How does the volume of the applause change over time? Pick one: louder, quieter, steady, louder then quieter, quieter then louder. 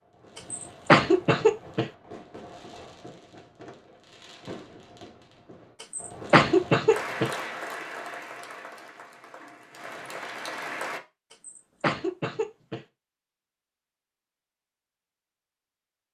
quieter then louder.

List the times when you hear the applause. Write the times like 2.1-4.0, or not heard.
6.9-11.0.